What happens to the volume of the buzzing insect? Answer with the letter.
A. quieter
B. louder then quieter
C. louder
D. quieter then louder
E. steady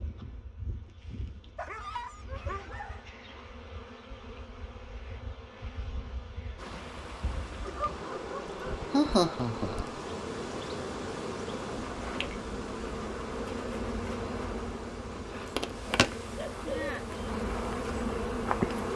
C.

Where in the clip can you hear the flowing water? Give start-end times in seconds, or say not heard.
6.5-18.9.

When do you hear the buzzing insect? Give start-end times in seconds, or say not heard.
0.0-18.9.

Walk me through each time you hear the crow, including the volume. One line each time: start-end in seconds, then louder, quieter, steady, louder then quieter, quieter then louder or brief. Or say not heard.
not heard.